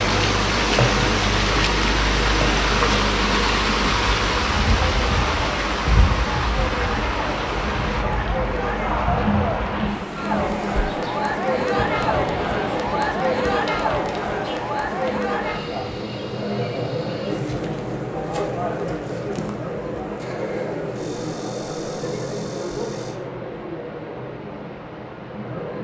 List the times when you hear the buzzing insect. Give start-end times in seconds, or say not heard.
0.0-23.1.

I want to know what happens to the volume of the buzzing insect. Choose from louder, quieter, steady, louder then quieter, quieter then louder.
quieter.